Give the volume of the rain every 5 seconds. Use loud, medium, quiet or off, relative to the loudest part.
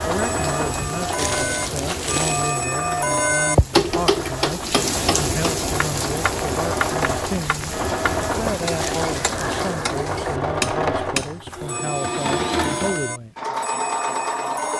loud, loud, off.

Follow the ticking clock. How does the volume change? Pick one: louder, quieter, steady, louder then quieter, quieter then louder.
quieter.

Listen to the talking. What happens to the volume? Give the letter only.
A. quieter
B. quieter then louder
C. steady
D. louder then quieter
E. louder
C.